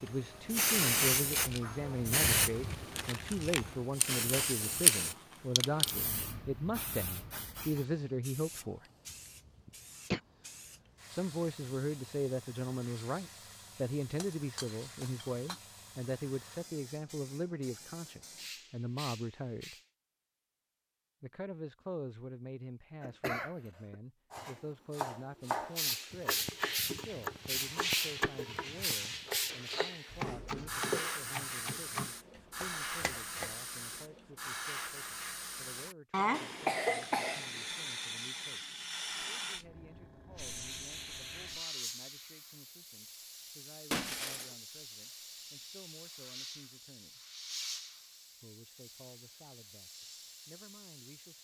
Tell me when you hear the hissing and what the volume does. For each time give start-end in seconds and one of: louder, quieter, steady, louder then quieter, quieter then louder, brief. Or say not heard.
0.1-19.9 quieter
25.8-51.3 quieter.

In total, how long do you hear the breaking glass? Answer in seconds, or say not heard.
2 s.